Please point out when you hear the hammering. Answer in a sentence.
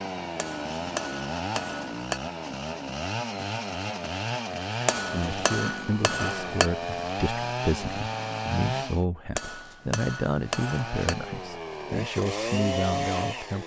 You can hear the hammering from 0.3 to 2.2 s, from 4.8 to 6.7 s and from 9.3 to 11.2 s.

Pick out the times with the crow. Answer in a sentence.
You can't hear the crow here.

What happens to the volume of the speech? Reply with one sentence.
The volume of the speech stays about the same.